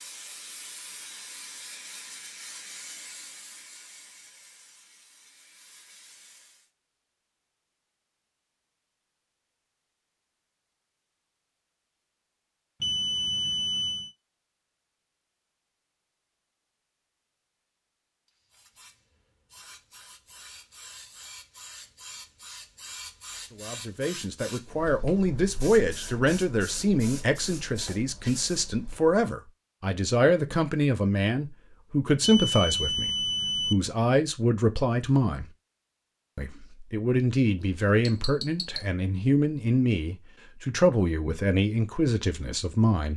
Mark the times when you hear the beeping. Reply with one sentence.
You can hear the beeping from 12.8 to 14.2 s and from 32.2 to 33.8 s.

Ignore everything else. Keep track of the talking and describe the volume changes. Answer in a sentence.
The volume of the talking stays about the same.